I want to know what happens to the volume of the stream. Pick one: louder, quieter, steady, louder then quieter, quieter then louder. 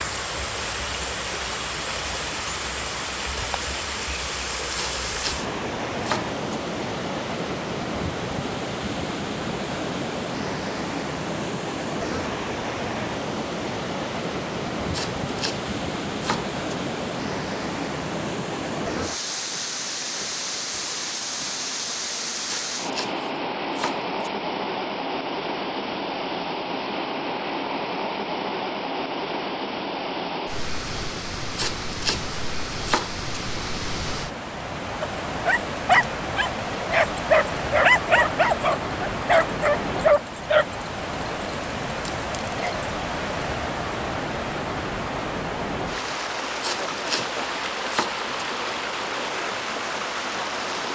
steady.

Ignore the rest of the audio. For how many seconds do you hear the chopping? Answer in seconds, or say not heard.
9 s.